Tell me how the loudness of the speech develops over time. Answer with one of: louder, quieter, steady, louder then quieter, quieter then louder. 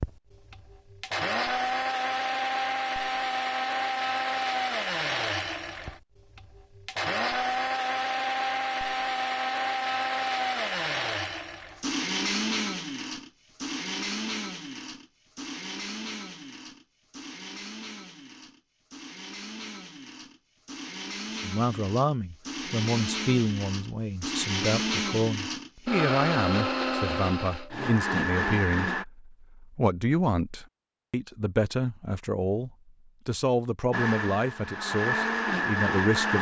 steady.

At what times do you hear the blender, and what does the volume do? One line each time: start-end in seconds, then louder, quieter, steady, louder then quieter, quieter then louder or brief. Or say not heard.
0.0-29.1 quieter then louder
33.9-36.3 brief.